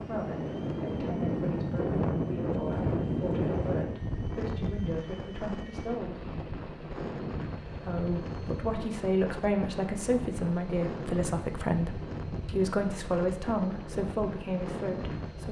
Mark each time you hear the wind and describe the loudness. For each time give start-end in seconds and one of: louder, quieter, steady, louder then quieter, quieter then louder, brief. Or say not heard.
0.0-15.4 quieter.